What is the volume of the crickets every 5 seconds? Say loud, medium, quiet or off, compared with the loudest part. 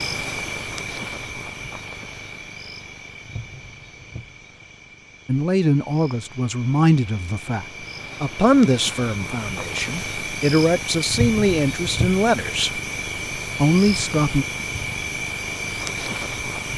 medium, medium, loud, loud.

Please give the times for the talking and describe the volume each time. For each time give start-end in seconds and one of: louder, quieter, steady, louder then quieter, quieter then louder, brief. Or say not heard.
5.2-12.7 quieter then louder
13.6-14.4 brief.